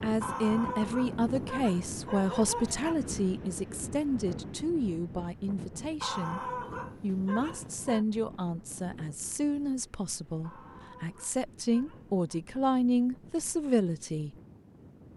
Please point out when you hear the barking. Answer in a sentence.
You can hear the barking from 0.2 to 3.0 s, from 6.0 to 8.1 s and from 10.4 to 12.4 s.